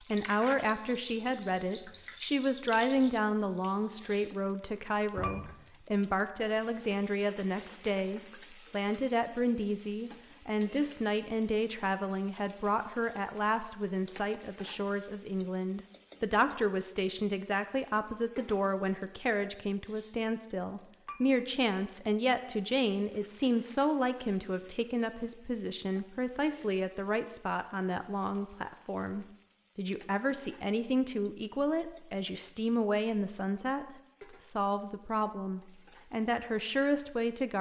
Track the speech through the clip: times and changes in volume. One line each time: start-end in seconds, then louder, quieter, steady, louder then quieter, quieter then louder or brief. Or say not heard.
0.1-37.5 steady.